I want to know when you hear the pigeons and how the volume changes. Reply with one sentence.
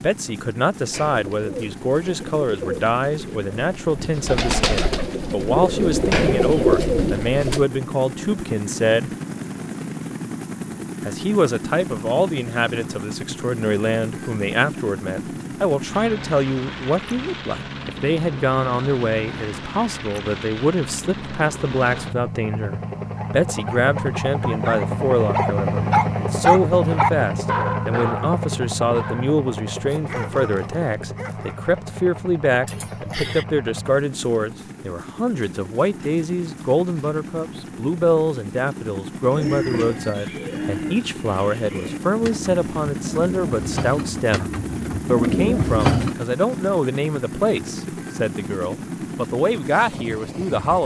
You can hear the pigeons from 0.8 to 7.7 s, getting louder; and from 39.3 to 46.1 s, getting quieter then louder.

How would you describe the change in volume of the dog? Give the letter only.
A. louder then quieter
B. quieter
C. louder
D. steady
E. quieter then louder
A.